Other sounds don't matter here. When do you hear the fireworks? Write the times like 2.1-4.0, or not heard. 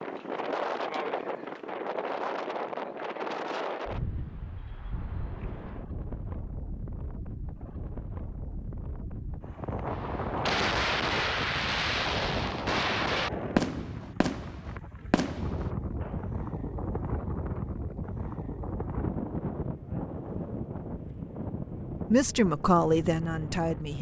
10.0-16.2.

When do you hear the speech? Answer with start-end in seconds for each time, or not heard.
22.1-23.9.